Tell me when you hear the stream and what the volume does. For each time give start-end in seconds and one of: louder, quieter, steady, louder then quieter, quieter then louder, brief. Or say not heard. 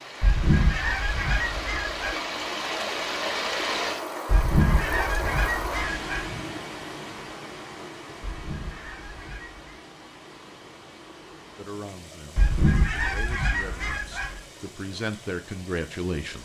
0.0-16.4 quieter.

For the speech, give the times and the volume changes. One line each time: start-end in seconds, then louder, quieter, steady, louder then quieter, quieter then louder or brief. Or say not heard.
11.6-16.4 louder.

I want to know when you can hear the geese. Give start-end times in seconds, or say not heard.
0.2-2.1, 4.2-6.2, 8.2-9.7, 12.3-14.4.